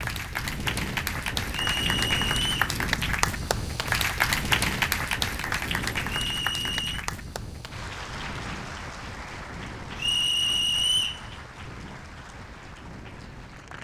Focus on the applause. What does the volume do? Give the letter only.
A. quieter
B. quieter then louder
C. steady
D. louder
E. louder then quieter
A.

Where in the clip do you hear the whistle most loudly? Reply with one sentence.
The loudest moment of the whistle is at 11 seconds.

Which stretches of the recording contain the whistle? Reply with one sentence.
You can hear the whistle from 1.5 to 2.7 s, from 6.0 to 7.0 s and from 9.9 to 11.2 s.